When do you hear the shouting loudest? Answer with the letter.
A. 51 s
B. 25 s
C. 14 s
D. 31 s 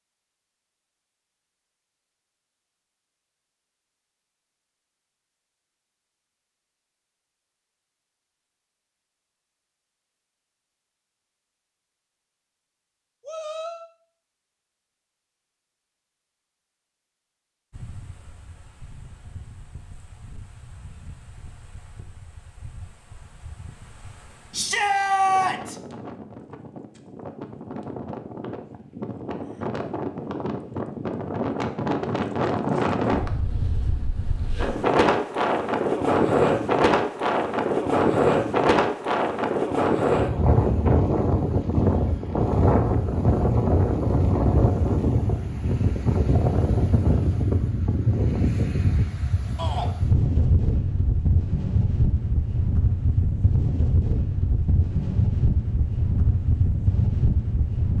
B.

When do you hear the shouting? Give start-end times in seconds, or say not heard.
13.2-13.9, 24.5-25.8, 49.5-50.0.